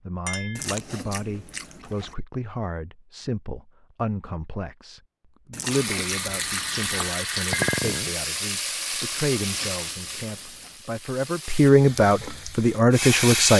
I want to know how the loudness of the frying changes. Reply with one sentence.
The volume of the frying goes down, then up.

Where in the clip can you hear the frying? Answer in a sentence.
You can hear the frying from 5.7 to 13.5 s.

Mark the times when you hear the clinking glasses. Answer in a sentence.
You can hear the clinking glasses from 0.2 to 0.8 s and from 7.5 to 8.1 s.